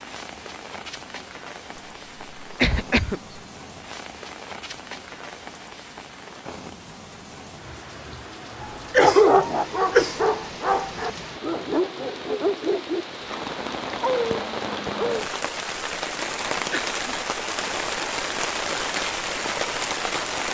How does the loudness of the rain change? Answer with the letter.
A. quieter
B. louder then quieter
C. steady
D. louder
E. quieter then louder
D.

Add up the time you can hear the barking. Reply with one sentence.
You can hear the barking for 7 seconds altogether.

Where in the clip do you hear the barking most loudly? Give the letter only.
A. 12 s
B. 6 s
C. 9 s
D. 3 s
C.